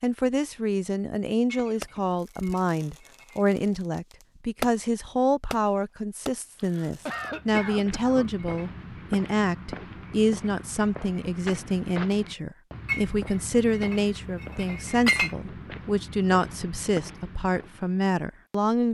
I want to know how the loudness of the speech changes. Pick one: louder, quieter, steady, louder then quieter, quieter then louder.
steady.